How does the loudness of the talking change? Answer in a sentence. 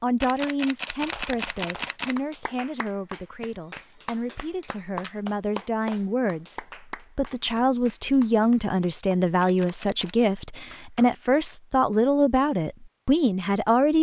The loudness of the talking goes up.